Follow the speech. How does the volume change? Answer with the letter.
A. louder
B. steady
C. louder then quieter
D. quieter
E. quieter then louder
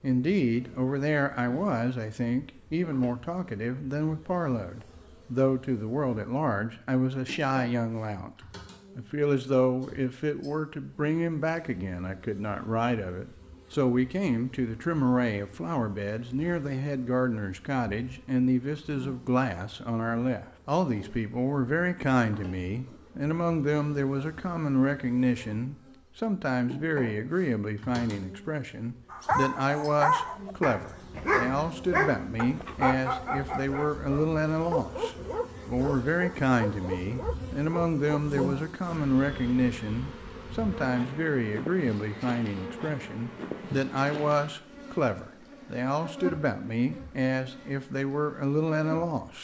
B.